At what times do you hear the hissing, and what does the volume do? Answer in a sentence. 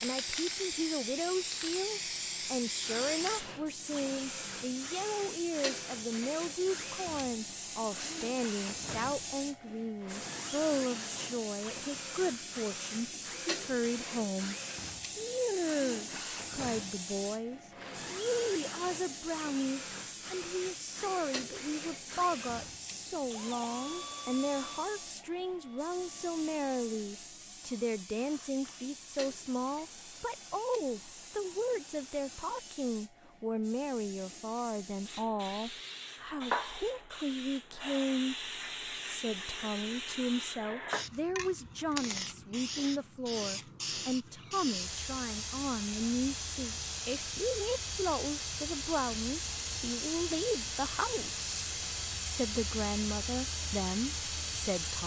You can hear the hissing from 0.0 to 55.0 s, getting quieter then louder.